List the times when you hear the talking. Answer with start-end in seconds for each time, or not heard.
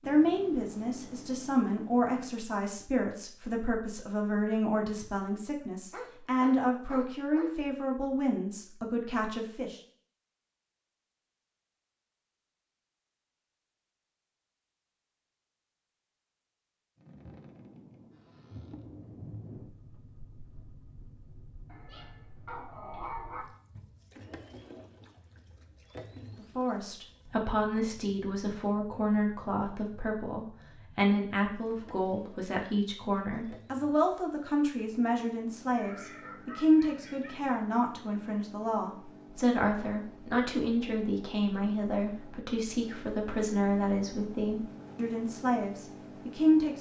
0.0-9.8, 26.4-46.7.